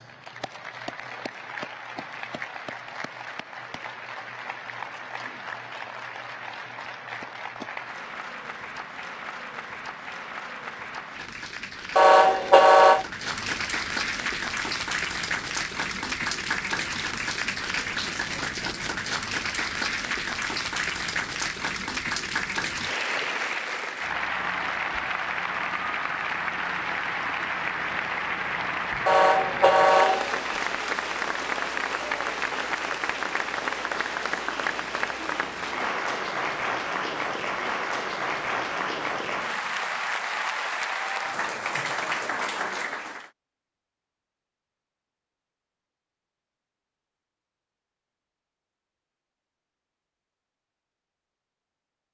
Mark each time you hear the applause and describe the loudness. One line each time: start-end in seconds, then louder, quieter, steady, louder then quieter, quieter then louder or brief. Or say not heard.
0.0-43.3 louder.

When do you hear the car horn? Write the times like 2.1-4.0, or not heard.
11.9-13.1, 29.1-30.4.